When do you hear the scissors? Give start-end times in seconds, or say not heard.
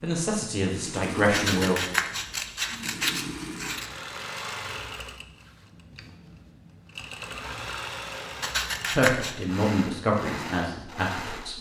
1.3-3.9, 8.4-9.3.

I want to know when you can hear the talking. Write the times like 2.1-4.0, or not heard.
0.0-1.8, 8.9-11.5.